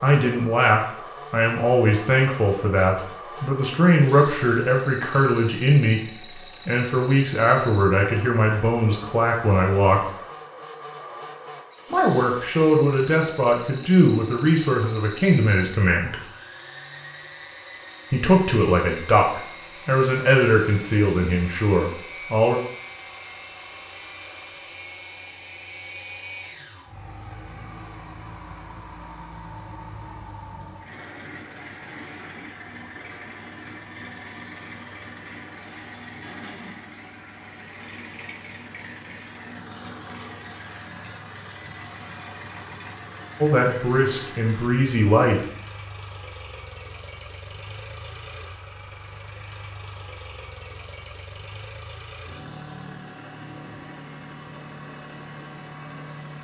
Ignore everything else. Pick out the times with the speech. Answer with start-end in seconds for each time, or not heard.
0.0-10.1, 11.9-16.1, 18.1-22.6, 43.4-45.4.